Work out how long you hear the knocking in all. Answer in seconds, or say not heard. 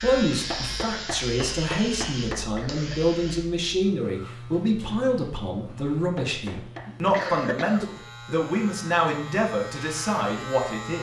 3 s.